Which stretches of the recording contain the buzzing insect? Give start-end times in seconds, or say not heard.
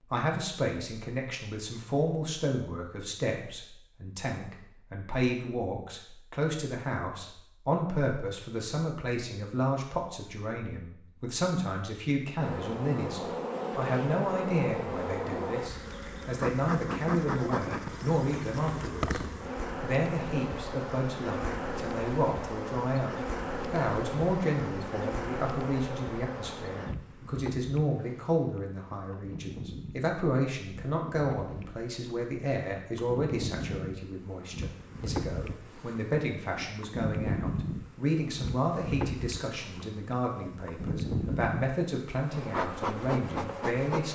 12.3-44.0.